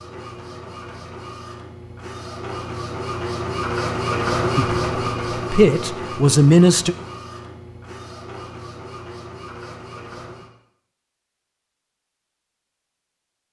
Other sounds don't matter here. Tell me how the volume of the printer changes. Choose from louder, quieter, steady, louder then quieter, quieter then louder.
louder then quieter.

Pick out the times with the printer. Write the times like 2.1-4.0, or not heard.
0.0-10.5.